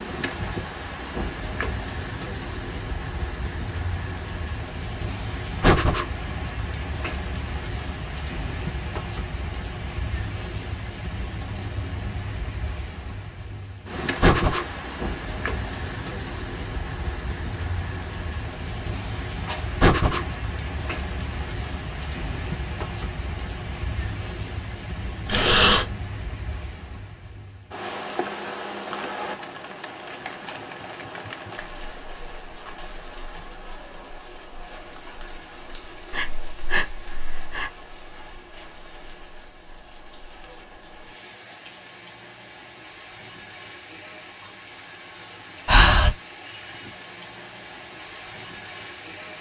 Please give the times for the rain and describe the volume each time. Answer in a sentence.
You can hear the rain from 0.0 to 49.3 s, getting quieter.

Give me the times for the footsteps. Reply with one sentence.
The footsteps can't be heard in this clip.